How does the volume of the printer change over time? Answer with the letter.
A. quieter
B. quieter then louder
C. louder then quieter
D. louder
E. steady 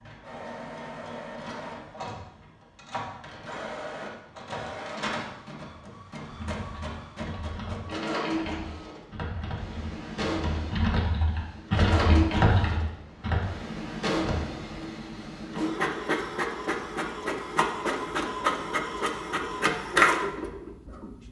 D.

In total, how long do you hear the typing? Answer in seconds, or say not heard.
8 s.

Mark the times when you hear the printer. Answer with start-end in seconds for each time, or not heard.
0.0-21.2.